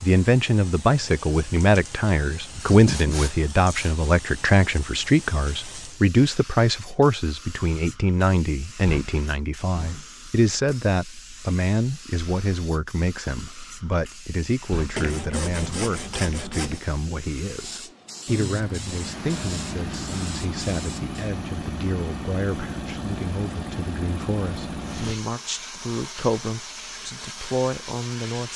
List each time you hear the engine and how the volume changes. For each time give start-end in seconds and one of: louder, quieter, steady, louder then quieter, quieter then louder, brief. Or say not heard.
18.2-25.1 steady.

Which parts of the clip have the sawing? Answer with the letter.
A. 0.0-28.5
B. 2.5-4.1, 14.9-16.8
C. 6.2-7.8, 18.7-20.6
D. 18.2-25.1
B.